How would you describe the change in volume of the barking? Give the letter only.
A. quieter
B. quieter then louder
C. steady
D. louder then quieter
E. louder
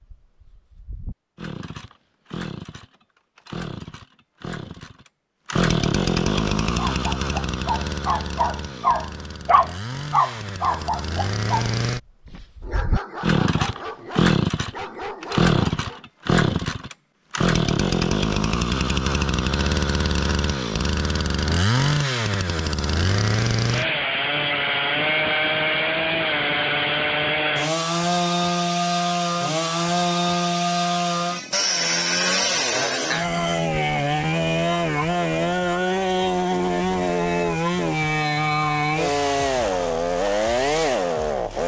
D.